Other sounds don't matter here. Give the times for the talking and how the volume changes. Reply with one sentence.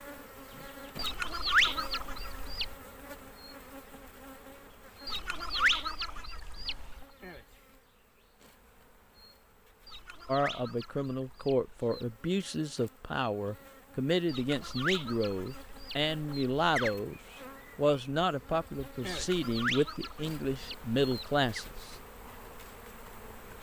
You can hear the talking from 10.2 to 21.9 s, at a steady volume.